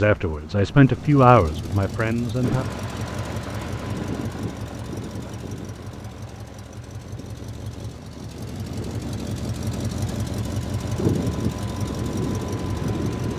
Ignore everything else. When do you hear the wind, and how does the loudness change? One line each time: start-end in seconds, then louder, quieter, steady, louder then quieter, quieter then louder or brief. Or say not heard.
2.4-13.3 quieter then louder.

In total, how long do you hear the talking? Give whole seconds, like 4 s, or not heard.
3 s.